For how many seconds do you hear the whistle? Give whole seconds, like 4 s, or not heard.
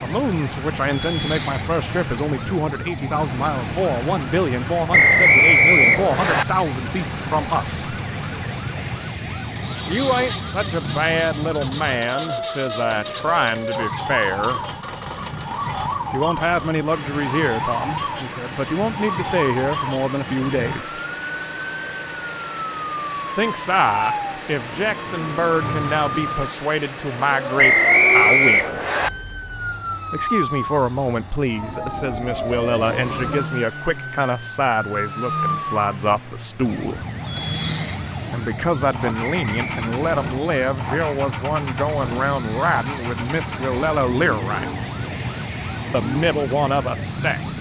4 s.